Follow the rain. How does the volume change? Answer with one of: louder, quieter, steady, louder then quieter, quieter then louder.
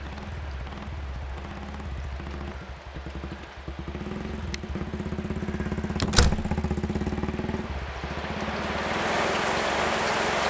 louder.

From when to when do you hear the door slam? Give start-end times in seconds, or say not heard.
6.0-6.5.